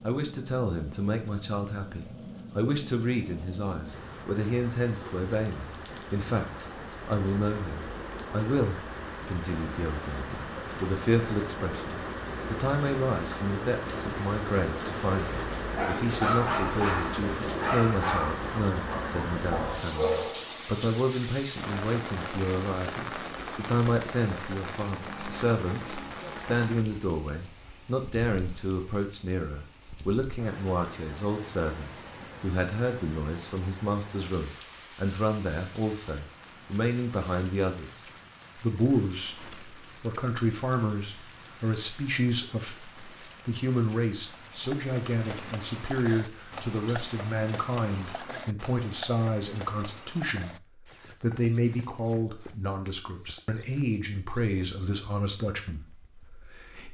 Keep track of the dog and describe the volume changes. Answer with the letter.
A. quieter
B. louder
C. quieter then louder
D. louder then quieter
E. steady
C.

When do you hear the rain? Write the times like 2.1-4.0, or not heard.
0.0-48.2.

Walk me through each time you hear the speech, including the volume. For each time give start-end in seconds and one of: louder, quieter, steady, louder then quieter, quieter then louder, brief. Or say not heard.
0.0-56.8 steady.